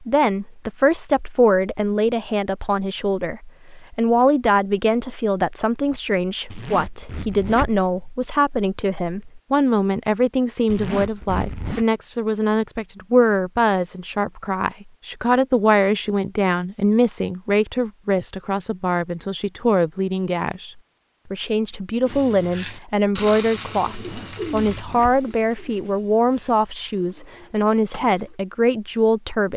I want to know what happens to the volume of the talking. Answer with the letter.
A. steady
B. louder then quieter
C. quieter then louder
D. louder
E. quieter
A.